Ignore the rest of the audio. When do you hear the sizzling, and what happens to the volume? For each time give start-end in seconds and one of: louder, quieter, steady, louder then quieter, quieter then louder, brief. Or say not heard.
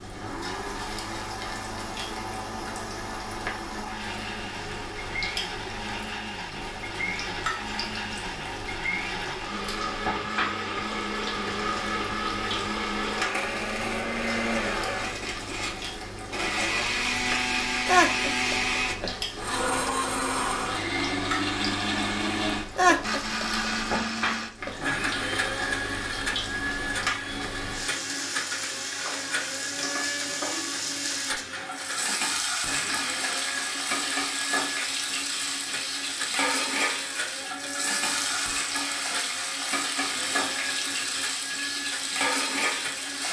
0.0-43.2 louder.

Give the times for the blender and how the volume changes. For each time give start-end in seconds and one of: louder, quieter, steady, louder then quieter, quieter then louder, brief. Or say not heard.
0.1-43.2 louder then quieter.